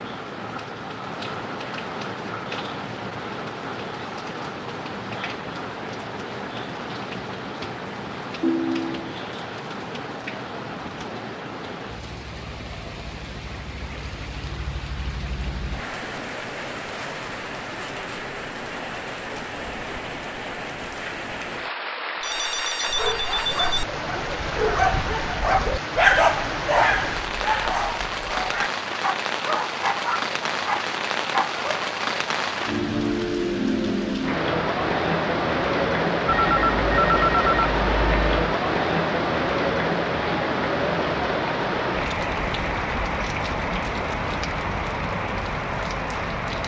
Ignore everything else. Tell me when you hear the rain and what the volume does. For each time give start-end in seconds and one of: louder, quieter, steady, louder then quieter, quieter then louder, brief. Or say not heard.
0.0-46.6 louder.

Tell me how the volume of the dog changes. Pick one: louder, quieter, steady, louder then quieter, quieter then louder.
louder then quieter.